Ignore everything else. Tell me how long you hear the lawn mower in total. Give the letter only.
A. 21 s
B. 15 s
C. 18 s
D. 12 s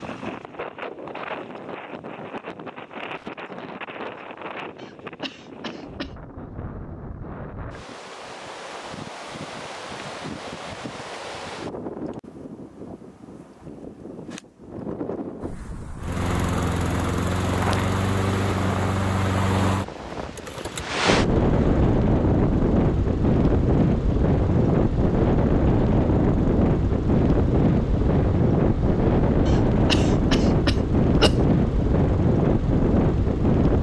C.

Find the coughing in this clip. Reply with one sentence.
You can hear the coughing from 4.8 to 6.2 s and from 29.4 to 31.4 s.